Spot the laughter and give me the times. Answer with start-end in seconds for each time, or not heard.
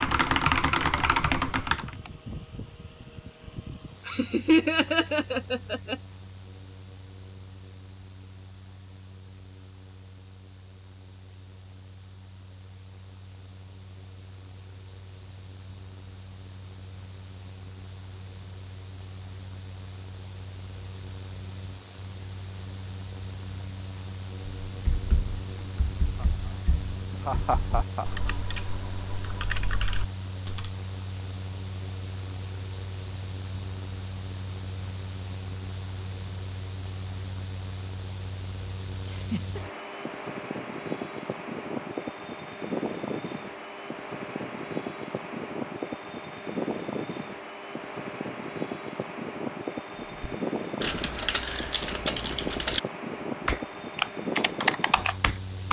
4.0-6.0, 27.1-28.1, 39.0-39.6.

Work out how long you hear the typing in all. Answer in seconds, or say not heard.
13 s.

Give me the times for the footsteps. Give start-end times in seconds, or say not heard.
not heard.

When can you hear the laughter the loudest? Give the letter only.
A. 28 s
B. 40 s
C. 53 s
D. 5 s
D.